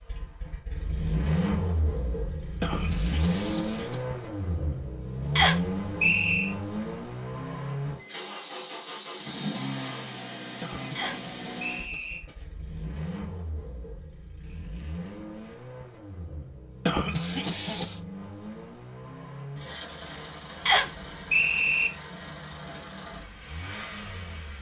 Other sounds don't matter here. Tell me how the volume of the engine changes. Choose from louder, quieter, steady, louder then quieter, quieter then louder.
quieter.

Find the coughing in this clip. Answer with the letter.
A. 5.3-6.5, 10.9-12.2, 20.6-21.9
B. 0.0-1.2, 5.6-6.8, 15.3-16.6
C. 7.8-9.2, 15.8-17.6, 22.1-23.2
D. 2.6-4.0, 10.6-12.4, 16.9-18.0
D.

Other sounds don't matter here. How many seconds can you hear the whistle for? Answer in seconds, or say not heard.
4 s.